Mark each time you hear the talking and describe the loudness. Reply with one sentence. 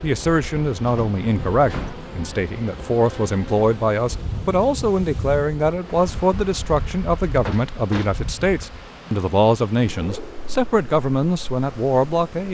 You can hear the talking from 0.0 to 12.4 s, at a steady volume.